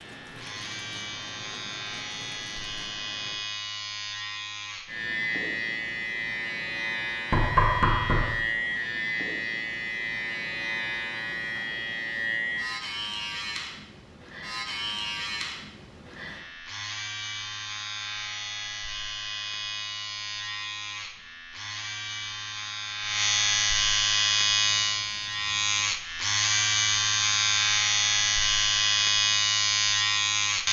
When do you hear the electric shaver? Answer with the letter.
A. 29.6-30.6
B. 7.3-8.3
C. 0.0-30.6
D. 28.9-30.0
C.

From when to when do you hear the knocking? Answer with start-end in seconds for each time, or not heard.
7.3-8.3.